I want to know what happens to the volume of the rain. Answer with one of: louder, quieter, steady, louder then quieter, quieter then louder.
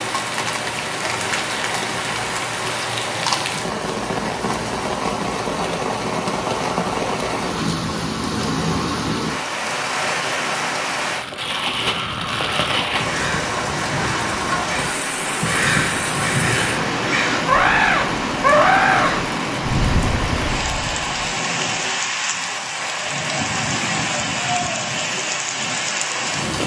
steady.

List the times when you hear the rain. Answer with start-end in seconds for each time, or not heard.
0.0-26.6.